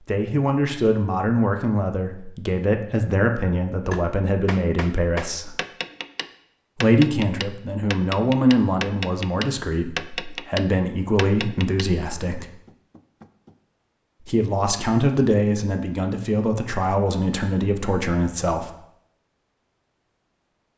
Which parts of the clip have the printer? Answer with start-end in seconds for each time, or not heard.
not heard.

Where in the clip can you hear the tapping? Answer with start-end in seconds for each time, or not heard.
3.9-13.6.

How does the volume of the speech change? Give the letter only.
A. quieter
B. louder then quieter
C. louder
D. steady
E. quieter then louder
D.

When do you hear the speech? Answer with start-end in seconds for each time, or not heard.
0.0-5.5, 6.8-12.5, 14.2-18.7.